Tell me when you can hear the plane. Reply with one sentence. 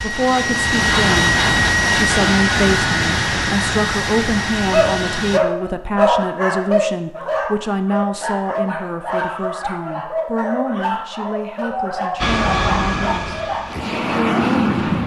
The plane can be heard from 0.0 to 5.4 s and from 12.2 to 15.0 s.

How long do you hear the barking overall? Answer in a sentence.
You can hear the barking for 9 seconds altogether.